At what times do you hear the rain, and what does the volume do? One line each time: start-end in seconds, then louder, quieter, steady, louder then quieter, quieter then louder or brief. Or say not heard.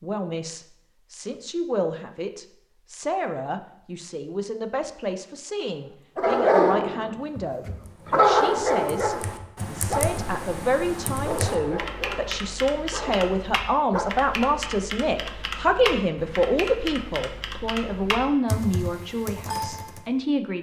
not heard.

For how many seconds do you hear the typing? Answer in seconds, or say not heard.
12 s.